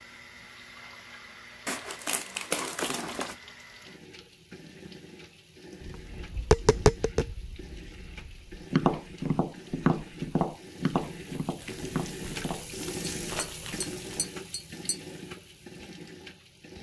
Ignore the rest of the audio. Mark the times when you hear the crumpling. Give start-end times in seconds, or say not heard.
1.6-3.4, 11.6-14.3.